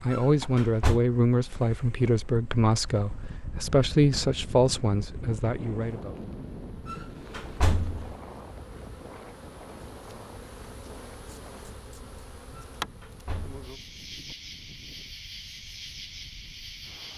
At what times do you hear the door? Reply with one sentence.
The door can be heard from 0.1 to 1.0 s, from 6.8 to 8.1 s and from 12.6 to 13.7 s.